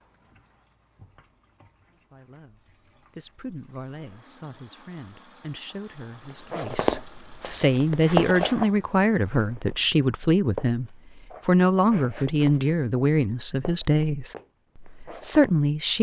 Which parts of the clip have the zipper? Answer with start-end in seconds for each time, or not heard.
not heard.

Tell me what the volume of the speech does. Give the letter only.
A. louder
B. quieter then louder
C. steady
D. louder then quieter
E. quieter
A.